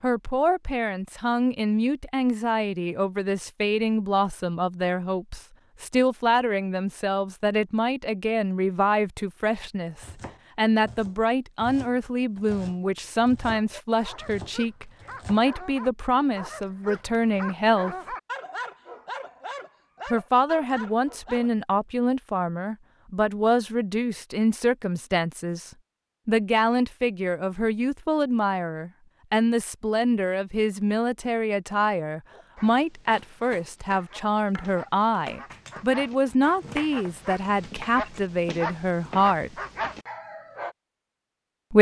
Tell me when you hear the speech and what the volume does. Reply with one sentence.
The speech can be heard from 0.0 to 18.1 s, at a steady volume; and from 20.1 to 39.5 s, at a steady volume.